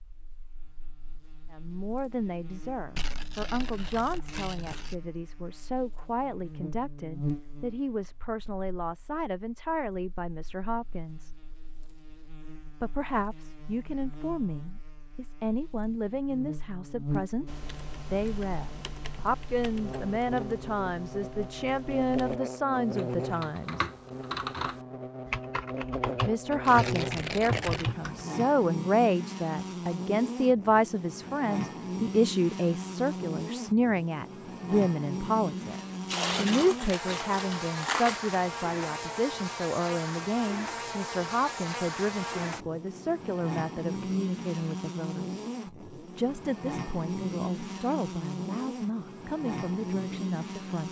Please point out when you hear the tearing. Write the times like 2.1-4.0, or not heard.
3.0-5.0, 26.6-27.9, 36.0-38.4.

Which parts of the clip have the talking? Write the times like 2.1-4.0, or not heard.
1.5-11.3, 12.8-17.4, 18.1-23.9, 26.2-50.8.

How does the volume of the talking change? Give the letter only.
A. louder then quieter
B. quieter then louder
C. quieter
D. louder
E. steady
A.